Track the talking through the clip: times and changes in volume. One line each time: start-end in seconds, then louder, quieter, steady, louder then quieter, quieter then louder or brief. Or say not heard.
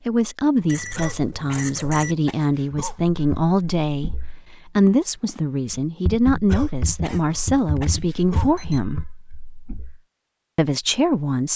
0.1-9.0 steady
10.6-11.5 brief.